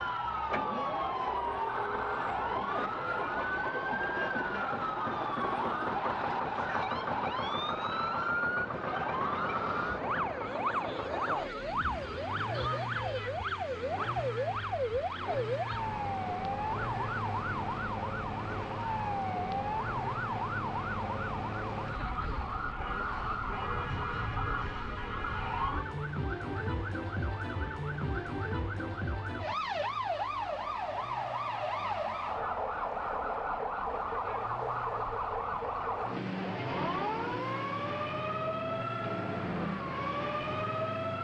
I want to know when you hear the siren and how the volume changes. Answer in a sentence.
The siren can be heard from 0.0 to 41.2 s, at a steady volume.